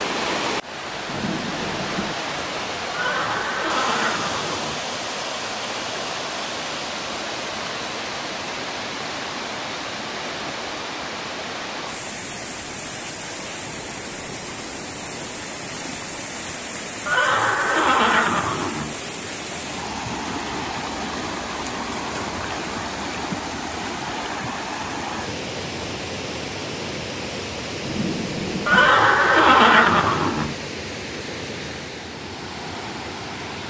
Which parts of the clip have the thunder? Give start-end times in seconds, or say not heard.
1.1-2.1, 27.8-28.9.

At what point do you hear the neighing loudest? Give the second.
30 s.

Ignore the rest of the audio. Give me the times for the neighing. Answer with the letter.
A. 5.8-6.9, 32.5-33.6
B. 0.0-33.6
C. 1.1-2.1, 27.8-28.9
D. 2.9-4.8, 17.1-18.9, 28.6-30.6
D.